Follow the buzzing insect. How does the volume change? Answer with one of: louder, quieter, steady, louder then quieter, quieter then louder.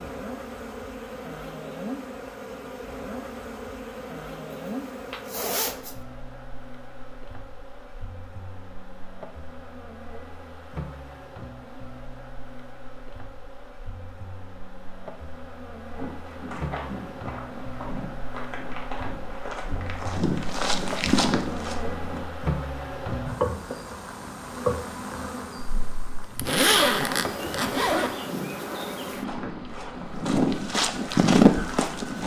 quieter then louder.